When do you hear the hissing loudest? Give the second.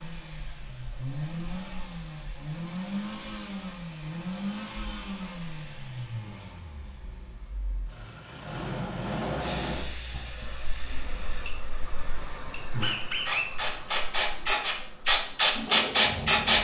16 s.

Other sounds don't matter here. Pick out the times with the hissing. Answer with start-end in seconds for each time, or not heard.
9.3-16.5.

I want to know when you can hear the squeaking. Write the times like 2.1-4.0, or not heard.
12.8-13.5.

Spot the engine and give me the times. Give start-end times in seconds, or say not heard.
0.0-16.5.